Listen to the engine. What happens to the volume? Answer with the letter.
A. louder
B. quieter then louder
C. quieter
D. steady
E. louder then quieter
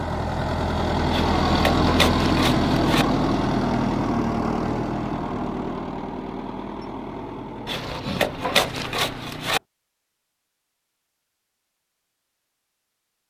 C.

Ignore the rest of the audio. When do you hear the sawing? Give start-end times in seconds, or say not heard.
1.1-3.0, 7.7-9.6.